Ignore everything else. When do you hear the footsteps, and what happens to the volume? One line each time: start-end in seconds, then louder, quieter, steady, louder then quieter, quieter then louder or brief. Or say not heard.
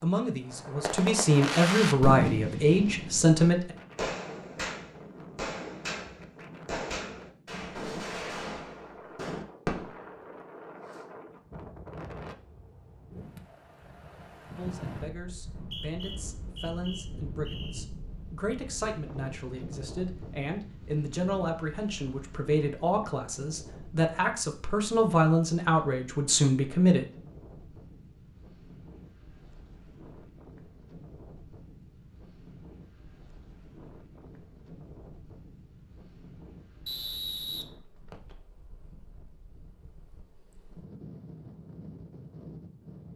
not heard.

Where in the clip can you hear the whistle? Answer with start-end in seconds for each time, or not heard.
15.3-17.9, 36.9-38.4.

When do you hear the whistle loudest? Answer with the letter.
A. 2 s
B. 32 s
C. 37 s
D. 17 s
C.